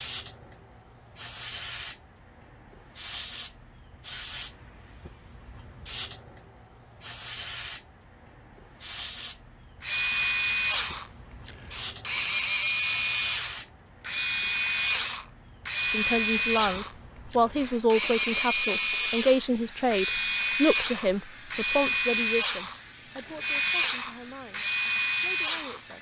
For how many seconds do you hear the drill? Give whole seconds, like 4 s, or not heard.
16 s.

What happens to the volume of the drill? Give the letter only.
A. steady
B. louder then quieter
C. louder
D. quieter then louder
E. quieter
A.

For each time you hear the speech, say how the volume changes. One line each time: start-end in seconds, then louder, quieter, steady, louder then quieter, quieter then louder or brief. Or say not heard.
15.9-25.9 quieter.